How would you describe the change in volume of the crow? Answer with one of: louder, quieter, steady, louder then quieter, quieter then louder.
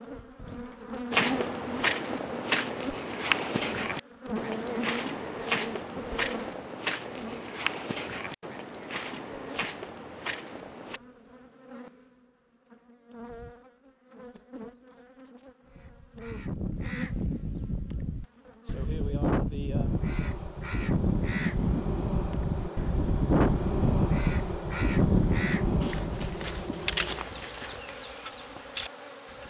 louder.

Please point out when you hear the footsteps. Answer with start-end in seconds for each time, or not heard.
1.1-11.0, 25.8-29.4.